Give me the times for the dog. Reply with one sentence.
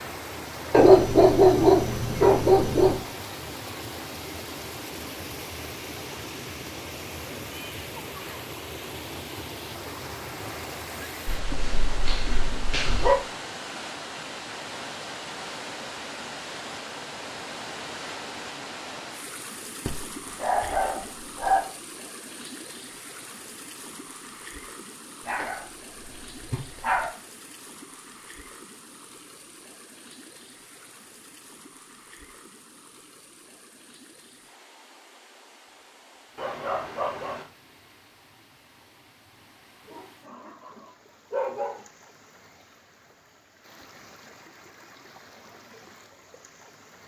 The dog can be heard from 0.7 to 3.0 s, from 11.2 to 13.2 s, from 19.9 to 21.6 s, from 25.2 to 27.1 s, from 36.4 to 37.5 s and from 39.9 to 41.9 s.